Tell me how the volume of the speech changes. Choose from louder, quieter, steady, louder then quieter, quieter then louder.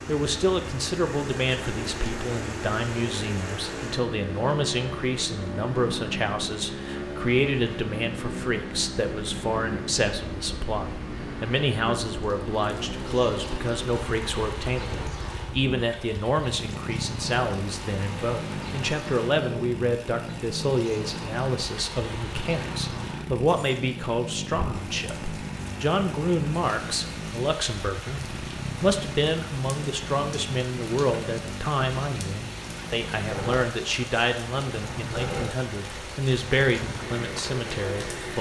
steady.